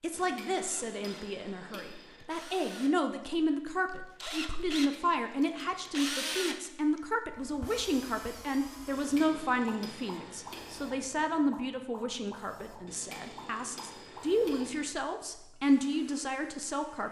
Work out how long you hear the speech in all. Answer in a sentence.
You can hear the speech for 17 seconds altogether.